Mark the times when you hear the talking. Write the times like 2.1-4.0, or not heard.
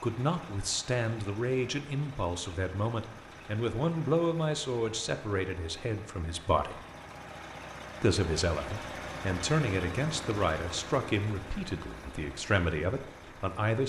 0.0-6.8, 8.0-13.8.